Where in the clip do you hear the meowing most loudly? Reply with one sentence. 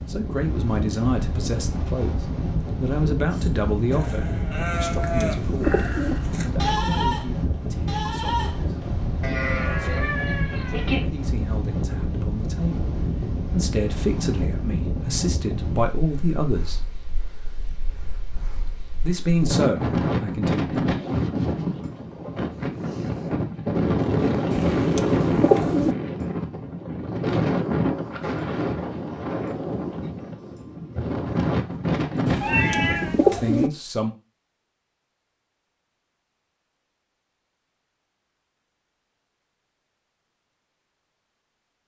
The loudest moment of the meowing is at 33 seconds.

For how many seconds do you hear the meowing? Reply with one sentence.
The meowing can be heard for 2 seconds in total.